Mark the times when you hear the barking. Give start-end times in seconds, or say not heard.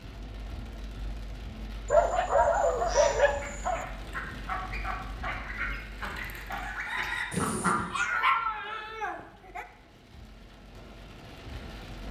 1.9-3.9, 7.8-9.7.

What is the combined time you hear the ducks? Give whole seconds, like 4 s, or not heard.
5 s.